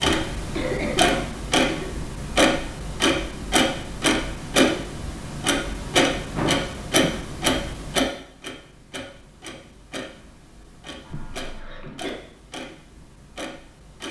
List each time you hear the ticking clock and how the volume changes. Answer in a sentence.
The ticking clock can be heard from 0.0 to 14.0 s, getting quieter.